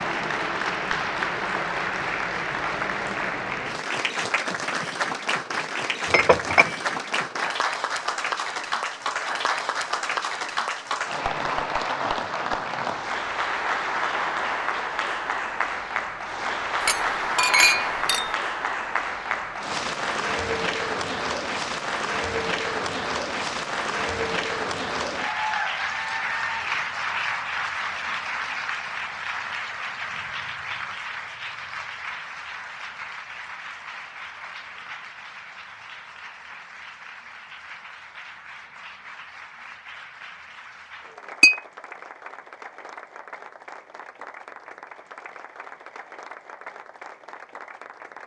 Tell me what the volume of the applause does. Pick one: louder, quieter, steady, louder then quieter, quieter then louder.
quieter.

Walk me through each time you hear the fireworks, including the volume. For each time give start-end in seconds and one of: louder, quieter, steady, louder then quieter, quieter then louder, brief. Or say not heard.
not heard.